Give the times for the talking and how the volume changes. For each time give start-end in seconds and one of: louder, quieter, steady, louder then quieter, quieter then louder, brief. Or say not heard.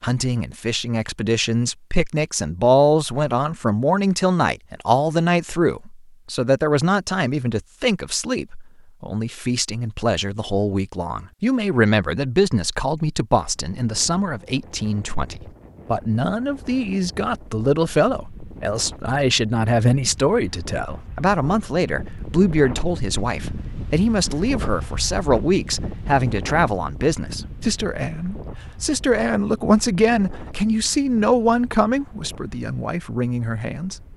0.0-34.0 steady.